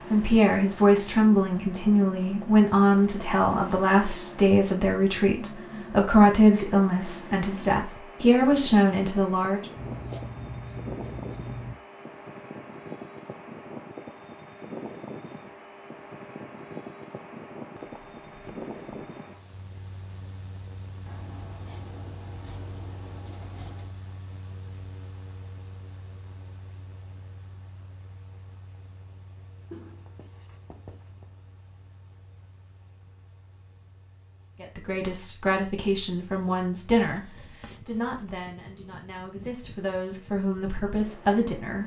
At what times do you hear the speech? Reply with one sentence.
You can hear the speech from 0.1 to 9.7 s and from 34.6 to 41.8 s.